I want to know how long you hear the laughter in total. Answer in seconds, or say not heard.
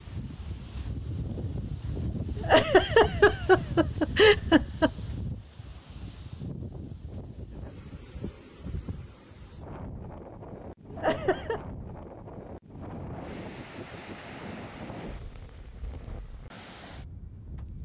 3 s.